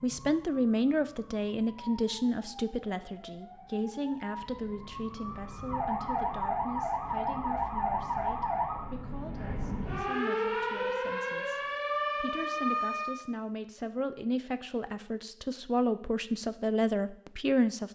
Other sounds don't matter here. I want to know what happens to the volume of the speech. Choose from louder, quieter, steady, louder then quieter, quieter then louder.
quieter then louder.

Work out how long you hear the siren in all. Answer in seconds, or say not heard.
13 s.